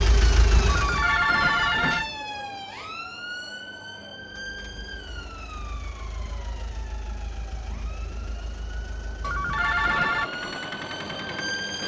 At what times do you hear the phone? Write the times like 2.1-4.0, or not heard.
0.7-2.1, 9.2-10.3.